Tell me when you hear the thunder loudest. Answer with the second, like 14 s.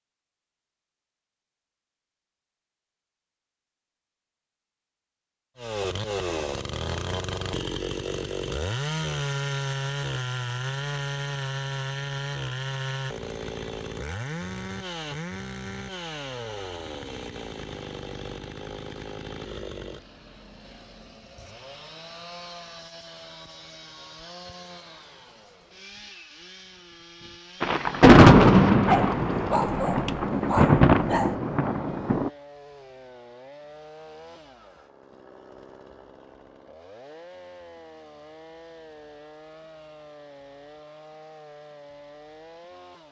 28 s.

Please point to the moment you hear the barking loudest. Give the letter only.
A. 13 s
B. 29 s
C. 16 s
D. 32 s
B.